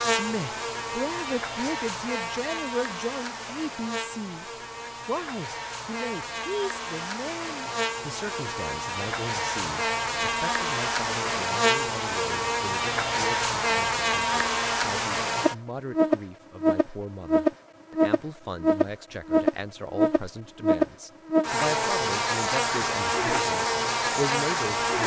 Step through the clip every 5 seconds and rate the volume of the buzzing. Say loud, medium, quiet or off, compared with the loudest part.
medium, medium, loud, loud, loud.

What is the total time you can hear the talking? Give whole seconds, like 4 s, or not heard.
25 s.